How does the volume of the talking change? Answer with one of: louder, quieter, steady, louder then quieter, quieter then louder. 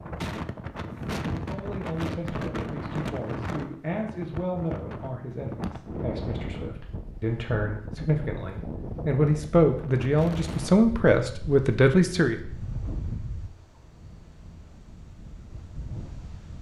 louder.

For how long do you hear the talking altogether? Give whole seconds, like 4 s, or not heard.
11 s.